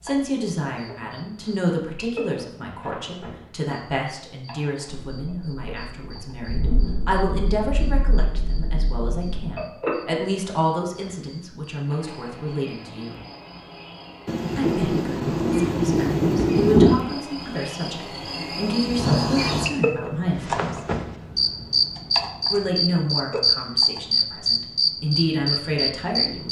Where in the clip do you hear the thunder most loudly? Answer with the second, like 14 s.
17 s.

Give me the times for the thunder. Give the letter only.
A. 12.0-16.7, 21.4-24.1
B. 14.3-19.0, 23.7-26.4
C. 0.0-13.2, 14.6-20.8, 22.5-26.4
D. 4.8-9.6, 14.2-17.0
D.